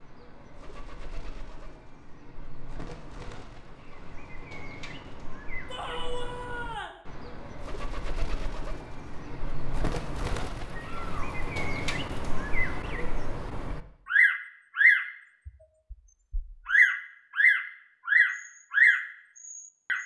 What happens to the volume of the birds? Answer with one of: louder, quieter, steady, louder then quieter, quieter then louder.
louder.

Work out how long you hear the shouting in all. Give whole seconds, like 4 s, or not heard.
2 s.